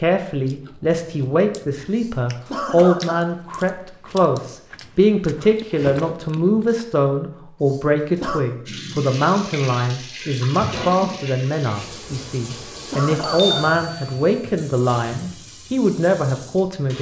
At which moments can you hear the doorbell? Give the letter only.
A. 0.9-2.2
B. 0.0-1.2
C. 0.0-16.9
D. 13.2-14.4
D.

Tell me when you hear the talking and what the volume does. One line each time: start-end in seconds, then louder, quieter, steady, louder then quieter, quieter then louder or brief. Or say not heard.
0.0-16.9 steady.